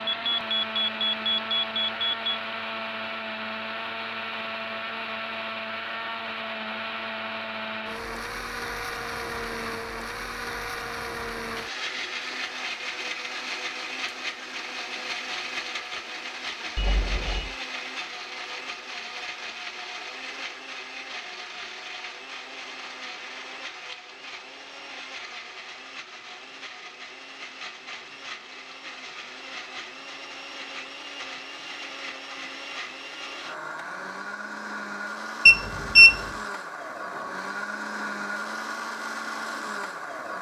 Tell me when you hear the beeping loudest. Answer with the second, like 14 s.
36 s.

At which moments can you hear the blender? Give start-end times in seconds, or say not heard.
0.0-40.3.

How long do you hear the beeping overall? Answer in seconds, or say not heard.
4 s.